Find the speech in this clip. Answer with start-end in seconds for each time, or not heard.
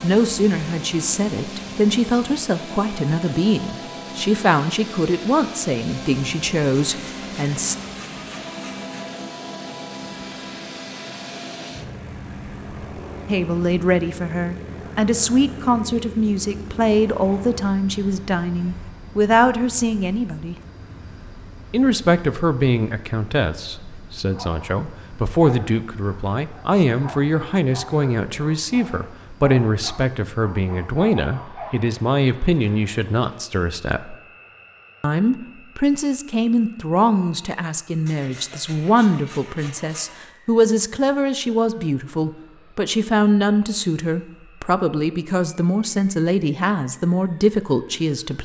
0.0-7.8, 13.2-20.6, 21.7-34.1, 35.0-48.4.